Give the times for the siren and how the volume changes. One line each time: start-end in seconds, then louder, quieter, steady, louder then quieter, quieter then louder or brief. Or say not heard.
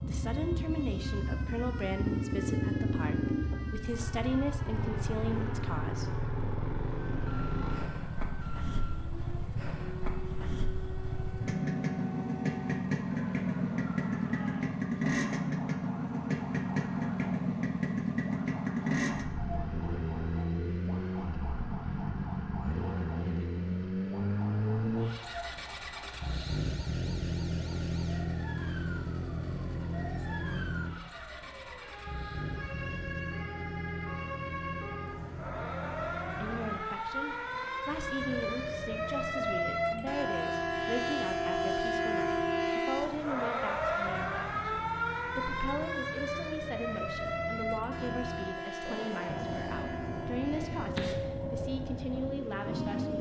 0.0-53.1 louder.